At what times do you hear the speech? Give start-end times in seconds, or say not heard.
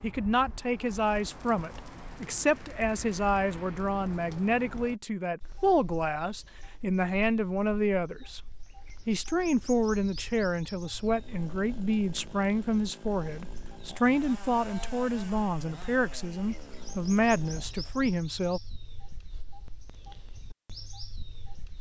0.0-8.4, 9.1-18.6.